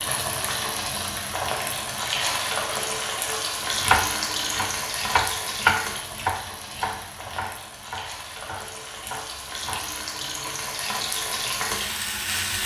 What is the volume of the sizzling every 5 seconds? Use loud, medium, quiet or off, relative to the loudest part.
loud, medium, loud.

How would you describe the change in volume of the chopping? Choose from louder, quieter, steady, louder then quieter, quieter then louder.
louder then quieter.